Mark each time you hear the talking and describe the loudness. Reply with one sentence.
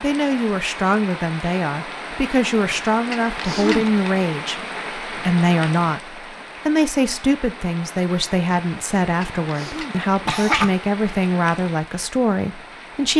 The talking can be heard from 0.0 to 13.1 s, at a steady volume.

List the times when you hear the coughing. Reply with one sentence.
The coughing can be heard from 3.1 to 4.1 s and from 9.2 to 10.7 s.